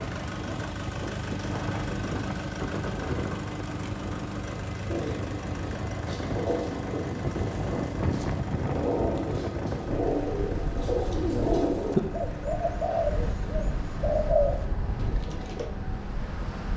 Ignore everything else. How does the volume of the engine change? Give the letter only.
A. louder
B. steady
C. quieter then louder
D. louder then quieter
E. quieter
E.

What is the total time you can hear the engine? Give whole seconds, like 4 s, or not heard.
17 s.